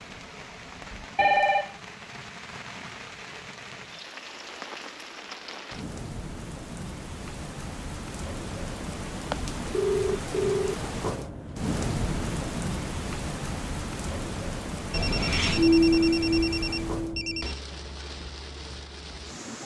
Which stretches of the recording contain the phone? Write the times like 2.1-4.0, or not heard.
1.1-1.7, 9.3-10.8, 14.9-17.6.